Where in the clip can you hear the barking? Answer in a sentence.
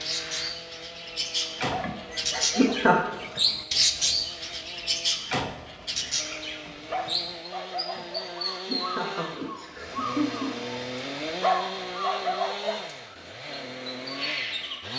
The barking can be heard from 1.7 to 2.9 s, from 6.9 to 8.3 s and from 11.2 to 12.8 s.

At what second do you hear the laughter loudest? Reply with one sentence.
The volume of the laughter peaks at 3 seconds.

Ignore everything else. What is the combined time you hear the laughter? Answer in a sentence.
You can hear the laughter for 4 seconds altogether.